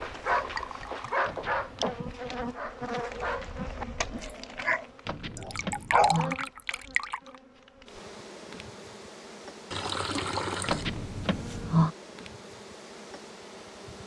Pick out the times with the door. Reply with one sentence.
The door can be heard from 1.2 to 2.0 s, from 5.0 to 6.3 s and from 10.7 to 11.9 s.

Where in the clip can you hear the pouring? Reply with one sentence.
You can hear the pouring from 0.3 to 1.3 s, from 5.3 to 7.3 s and from 9.7 to 10.9 s.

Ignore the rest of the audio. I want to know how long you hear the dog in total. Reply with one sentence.
The dog can be heard for 6 seconds in total.